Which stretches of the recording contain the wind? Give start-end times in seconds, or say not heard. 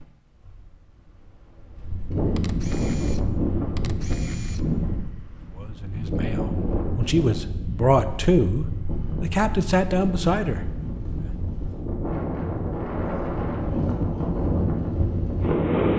0.0-15.9.